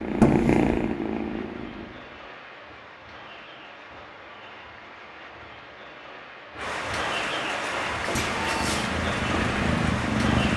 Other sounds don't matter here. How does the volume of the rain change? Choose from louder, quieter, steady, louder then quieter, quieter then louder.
louder.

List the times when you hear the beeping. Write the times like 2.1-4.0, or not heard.
8.1-8.9.